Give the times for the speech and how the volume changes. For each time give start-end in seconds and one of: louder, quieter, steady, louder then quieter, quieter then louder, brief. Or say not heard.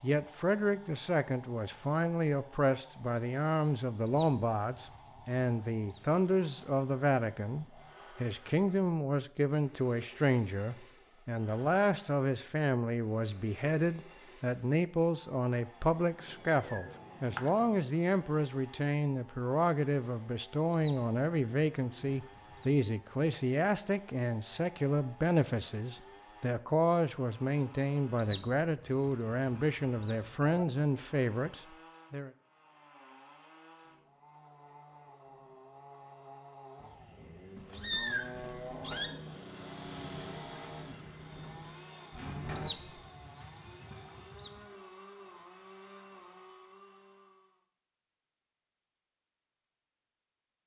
0.0-32.3 steady.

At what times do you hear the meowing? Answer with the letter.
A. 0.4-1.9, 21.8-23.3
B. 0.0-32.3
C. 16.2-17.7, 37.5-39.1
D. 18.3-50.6
C.